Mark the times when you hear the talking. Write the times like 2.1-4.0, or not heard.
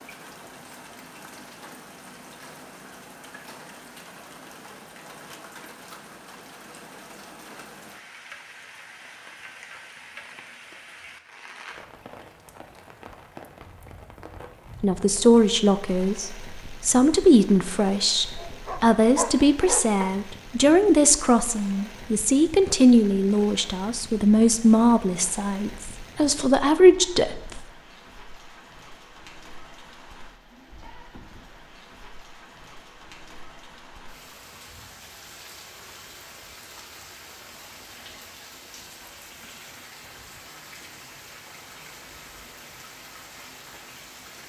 14.8-27.6.